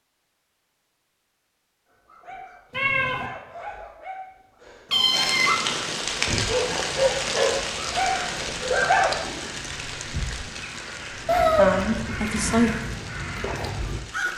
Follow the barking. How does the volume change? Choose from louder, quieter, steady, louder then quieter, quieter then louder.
louder.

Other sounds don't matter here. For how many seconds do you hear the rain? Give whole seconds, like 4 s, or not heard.
9 s.